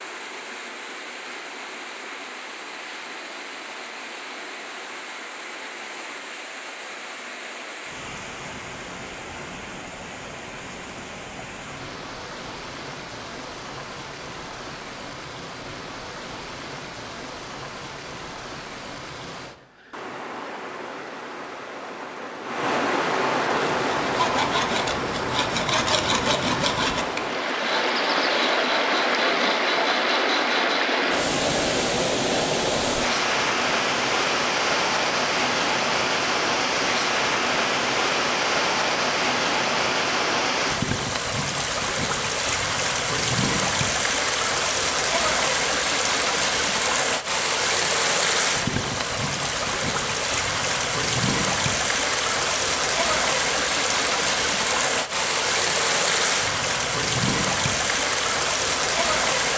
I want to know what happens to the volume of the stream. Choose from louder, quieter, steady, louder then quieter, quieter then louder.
louder.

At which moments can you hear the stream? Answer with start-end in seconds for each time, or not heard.
0.0-59.5.